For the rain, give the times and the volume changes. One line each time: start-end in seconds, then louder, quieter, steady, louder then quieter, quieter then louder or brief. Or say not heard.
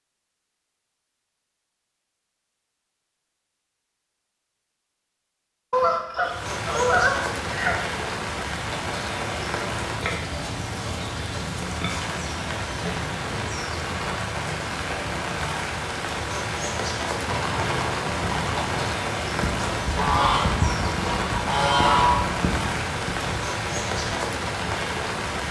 6.2-25.4 steady.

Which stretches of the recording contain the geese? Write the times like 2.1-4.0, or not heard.
5.7-7.8, 19.6-22.3.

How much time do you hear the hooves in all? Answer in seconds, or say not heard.
7 s.